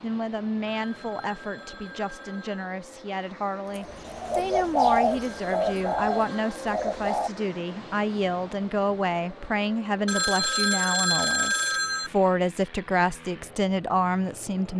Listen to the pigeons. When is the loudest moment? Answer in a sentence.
The volume of the pigeons peaks at 5 seconds.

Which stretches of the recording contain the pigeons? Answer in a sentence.
The pigeons can be heard from 3.8 to 7.3 s.